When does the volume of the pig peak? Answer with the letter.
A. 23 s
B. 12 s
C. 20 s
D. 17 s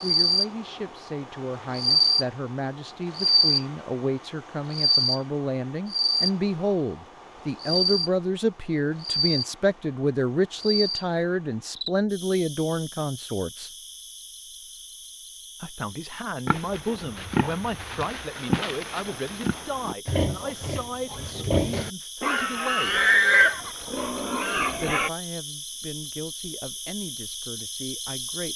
A.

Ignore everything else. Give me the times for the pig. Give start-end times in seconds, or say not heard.
16.4-25.1.